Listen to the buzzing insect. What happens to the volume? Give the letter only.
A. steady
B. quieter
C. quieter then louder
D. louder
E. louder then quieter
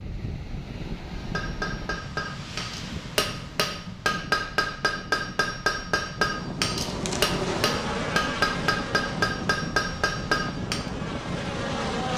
C.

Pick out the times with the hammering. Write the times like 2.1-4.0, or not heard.
1.1-10.8.